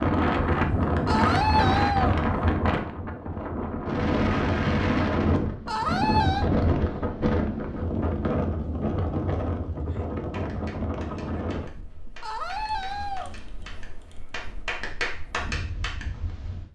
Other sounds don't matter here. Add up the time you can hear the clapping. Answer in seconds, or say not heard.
6 s.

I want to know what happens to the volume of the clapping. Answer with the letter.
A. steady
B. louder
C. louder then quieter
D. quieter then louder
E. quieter
B.